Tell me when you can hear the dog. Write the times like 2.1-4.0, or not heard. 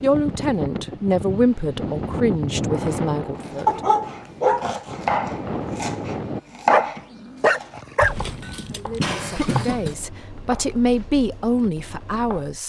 3.6-4.7, 6.7-8.2.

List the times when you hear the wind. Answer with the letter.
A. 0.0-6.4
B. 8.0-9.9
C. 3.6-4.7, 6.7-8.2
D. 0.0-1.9
A.